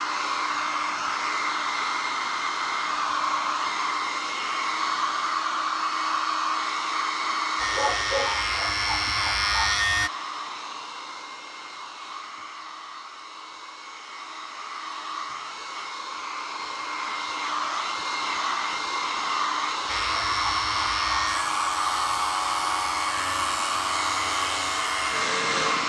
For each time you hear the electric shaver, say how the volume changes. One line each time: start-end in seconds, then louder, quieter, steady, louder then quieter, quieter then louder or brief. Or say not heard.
7.5-10.1 brief
19.9-25.8 steady.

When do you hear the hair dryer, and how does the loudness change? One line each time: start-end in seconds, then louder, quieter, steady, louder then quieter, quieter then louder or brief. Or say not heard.
0.0-25.8 quieter then louder.